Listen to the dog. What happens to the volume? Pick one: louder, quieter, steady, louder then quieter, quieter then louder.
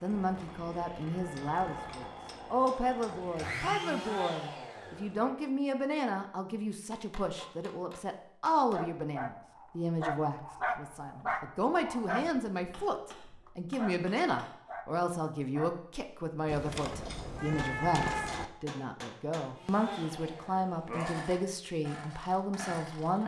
quieter.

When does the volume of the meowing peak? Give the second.
18 s.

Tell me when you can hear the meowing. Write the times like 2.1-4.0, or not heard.
0.1-2.1, 16.4-18.4.